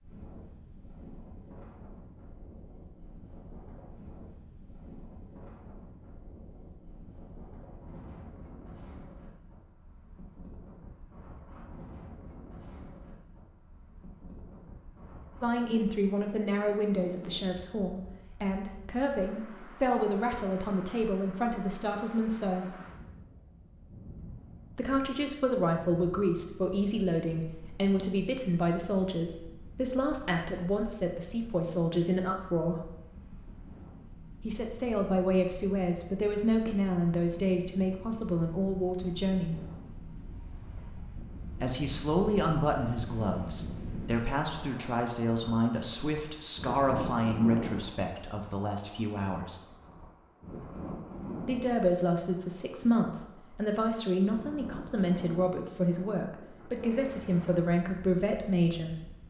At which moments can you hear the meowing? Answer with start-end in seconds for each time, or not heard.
not heard.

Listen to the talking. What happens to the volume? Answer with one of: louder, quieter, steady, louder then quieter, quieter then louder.
steady.